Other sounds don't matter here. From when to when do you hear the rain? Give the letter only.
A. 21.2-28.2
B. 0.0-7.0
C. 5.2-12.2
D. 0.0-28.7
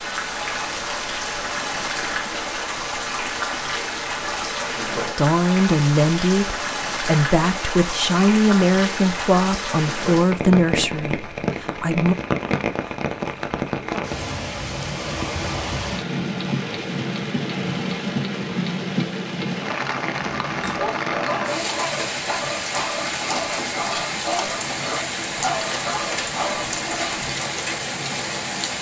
D.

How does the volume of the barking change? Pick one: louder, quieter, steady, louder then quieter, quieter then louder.
steady.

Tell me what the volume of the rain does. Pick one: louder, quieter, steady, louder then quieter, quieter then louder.
steady.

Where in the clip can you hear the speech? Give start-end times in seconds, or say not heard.
5.2-12.2.